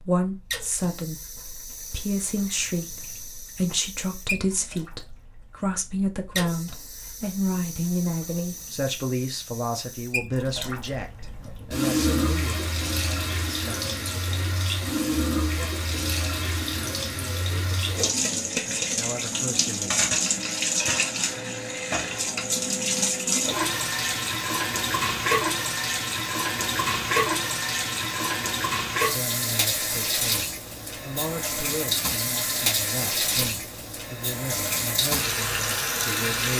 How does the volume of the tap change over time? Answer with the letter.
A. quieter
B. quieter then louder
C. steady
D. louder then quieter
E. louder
E.